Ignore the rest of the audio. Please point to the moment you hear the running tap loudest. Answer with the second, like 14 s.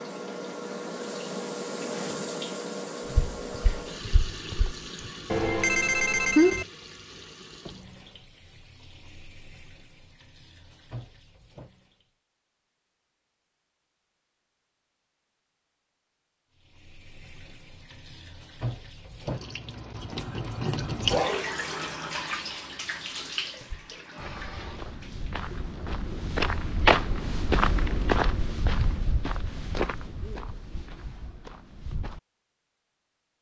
21 s.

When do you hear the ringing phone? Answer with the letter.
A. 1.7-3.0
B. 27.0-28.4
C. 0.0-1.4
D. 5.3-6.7
D.